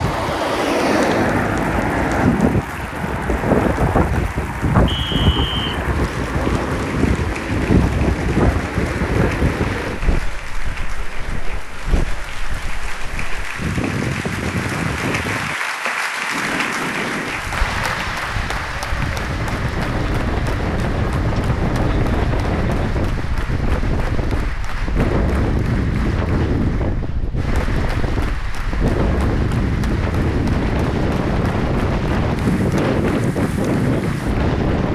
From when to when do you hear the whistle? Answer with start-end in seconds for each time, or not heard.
4.8-5.8.